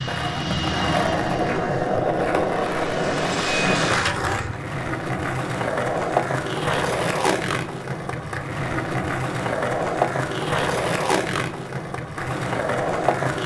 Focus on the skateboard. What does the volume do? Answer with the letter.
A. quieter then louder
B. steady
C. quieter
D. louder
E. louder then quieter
B.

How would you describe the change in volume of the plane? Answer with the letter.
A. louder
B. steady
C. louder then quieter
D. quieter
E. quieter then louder
E.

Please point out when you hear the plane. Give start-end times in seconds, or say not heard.
0.0-4.1.